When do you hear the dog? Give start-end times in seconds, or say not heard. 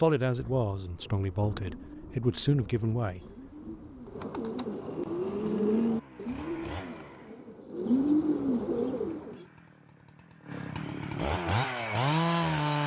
not heard.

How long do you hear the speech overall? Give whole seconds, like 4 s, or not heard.
3 s.